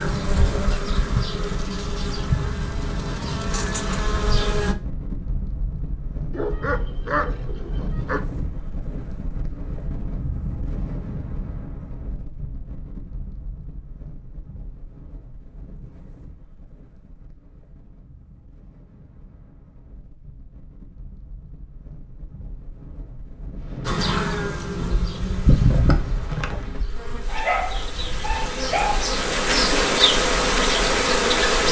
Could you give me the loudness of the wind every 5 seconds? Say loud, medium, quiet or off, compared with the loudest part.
loud, loud, loud, quiet, medium, medium, off.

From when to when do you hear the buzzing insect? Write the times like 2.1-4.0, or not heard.
0.0-4.8, 23.9-31.6.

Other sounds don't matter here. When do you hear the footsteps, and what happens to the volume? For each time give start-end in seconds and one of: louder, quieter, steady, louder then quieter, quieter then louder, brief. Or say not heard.
not heard.